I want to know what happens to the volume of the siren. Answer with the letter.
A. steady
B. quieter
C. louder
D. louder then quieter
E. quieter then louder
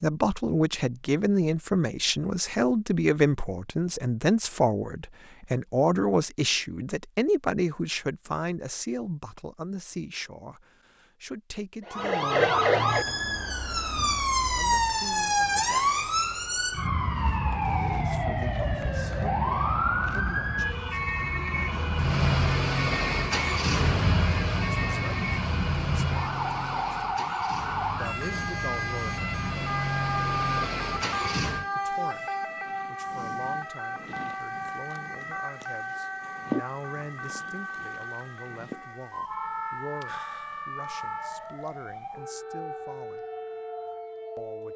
B.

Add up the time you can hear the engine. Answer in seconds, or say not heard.
10 s.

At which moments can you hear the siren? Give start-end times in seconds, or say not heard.
11.8-44.7.